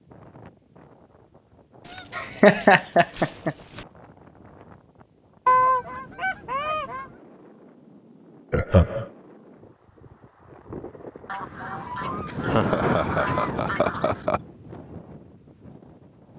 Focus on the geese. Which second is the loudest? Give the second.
6 s.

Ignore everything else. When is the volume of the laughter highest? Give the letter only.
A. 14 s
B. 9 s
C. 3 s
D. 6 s
C.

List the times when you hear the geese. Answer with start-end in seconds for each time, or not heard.
1.9-3.9, 5.5-7.0, 11.2-14.2.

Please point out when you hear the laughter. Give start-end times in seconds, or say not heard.
2.1-3.5, 8.5-9.1, 12.4-14.4.